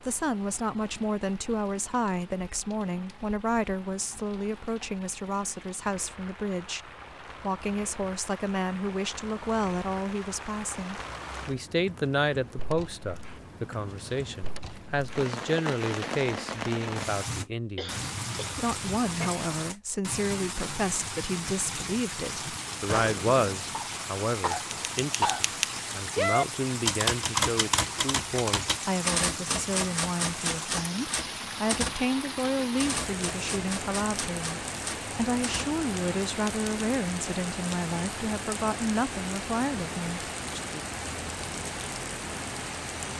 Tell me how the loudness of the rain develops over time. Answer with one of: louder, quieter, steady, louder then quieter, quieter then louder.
louder.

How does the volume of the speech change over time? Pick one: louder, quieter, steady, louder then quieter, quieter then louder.
steady.